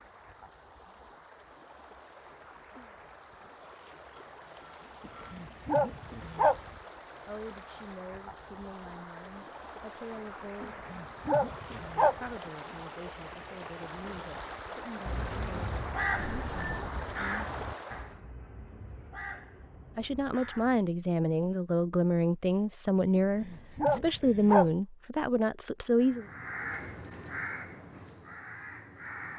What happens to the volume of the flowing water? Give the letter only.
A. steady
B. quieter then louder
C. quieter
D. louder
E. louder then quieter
D.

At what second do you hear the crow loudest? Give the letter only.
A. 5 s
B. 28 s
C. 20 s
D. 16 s
D.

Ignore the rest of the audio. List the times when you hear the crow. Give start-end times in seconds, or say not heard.
15.1-20.8, 25.9-29.3.